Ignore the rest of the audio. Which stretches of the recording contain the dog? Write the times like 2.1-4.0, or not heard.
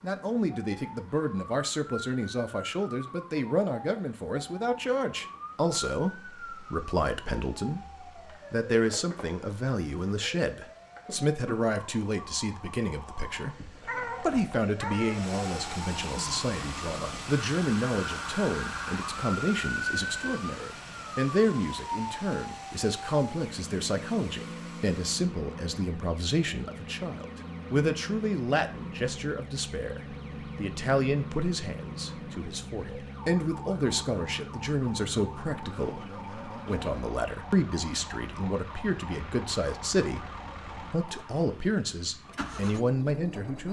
13.5-15.2.